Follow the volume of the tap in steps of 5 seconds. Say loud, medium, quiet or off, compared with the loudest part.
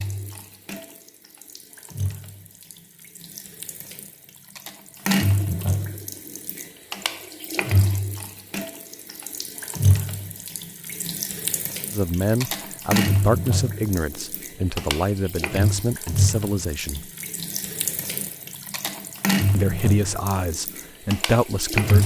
quiet, loud, loud, loud, loud.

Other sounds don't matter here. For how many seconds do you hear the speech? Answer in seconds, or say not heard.
8 s.